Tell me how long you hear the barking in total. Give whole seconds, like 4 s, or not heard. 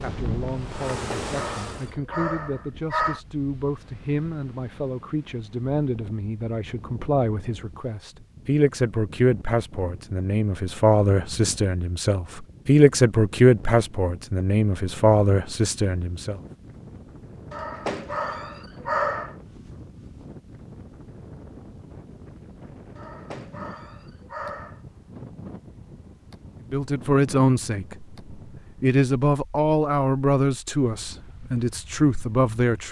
6 s.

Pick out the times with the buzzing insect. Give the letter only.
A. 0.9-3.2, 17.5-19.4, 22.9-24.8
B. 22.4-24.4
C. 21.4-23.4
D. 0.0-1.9
D.